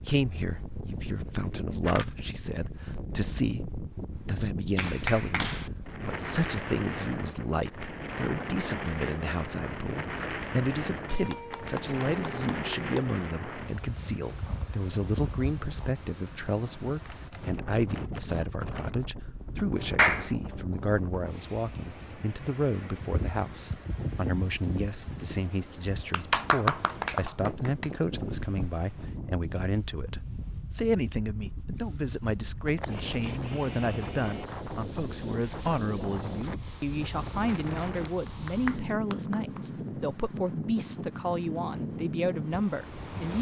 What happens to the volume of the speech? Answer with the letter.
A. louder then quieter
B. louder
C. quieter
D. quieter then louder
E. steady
E.